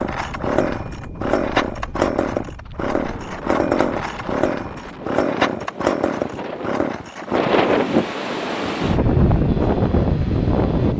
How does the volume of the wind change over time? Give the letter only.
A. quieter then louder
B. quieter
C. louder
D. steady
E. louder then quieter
C.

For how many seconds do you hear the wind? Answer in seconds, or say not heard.
11 s.